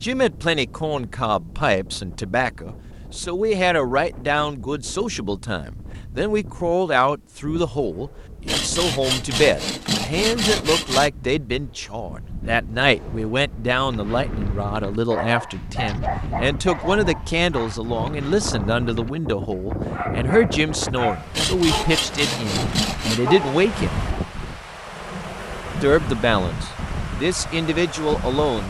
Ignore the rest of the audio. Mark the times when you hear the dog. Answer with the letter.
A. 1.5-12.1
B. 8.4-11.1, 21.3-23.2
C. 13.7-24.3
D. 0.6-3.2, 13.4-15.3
C.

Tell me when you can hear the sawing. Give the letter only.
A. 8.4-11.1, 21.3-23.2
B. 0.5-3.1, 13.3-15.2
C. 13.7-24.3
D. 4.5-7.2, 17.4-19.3
A.